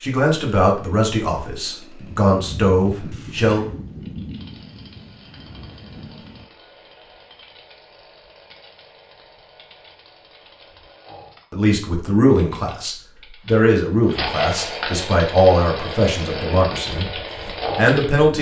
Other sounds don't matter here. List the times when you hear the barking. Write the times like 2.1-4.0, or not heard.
not heard.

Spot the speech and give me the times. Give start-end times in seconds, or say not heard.
0.0-3.6, 11.5-18.3.